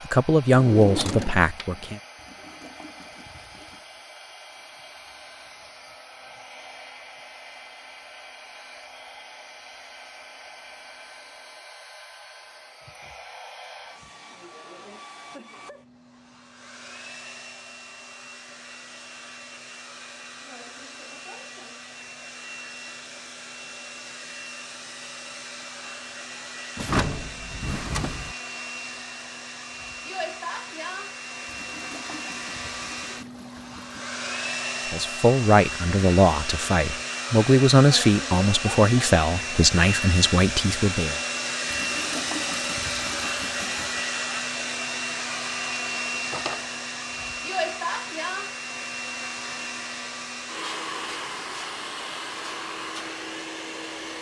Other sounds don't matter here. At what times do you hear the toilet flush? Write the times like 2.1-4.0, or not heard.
2.1-3.9, 31.4-34.0, 41.6-44.0.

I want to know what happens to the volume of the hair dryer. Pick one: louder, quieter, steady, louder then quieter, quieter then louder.
louder.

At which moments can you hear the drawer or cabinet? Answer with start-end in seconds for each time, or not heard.
0.5-1.9, 26.8-28.4, 46.1-46.6.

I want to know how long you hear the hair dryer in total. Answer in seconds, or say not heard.
54 s.